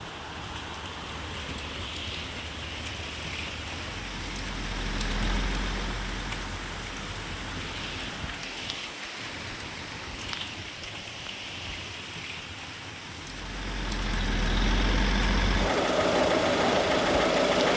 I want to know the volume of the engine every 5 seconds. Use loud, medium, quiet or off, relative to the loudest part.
quiet, quiet, medium, loud.